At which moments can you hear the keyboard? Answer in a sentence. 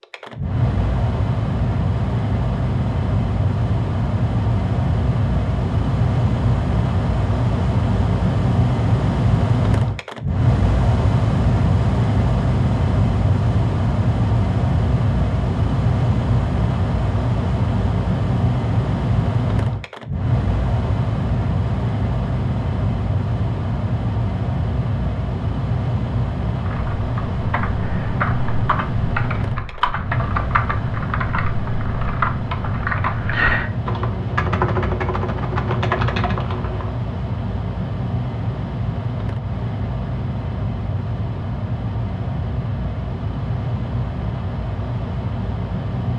The keyboard can be heard from 26.6 to 36.9 s.